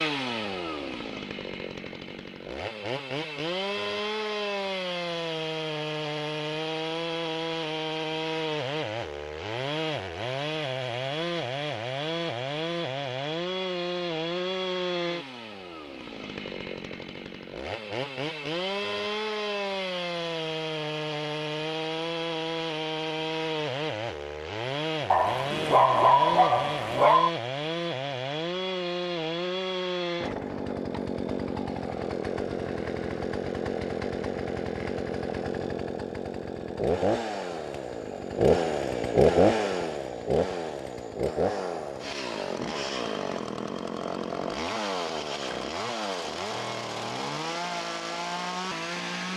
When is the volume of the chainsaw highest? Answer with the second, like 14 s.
39 s.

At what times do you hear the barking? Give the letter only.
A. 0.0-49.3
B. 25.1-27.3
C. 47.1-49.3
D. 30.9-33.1
B.